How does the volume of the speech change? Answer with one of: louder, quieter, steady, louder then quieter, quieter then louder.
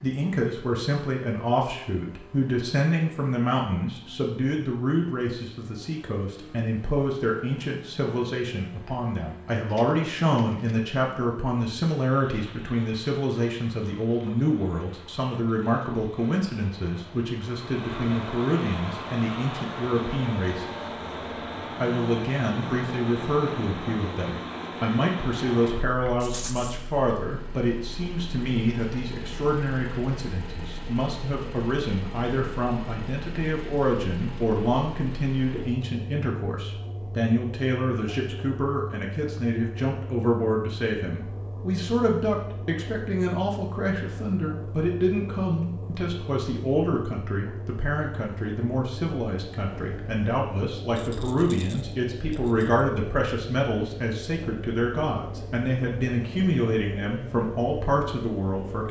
steady.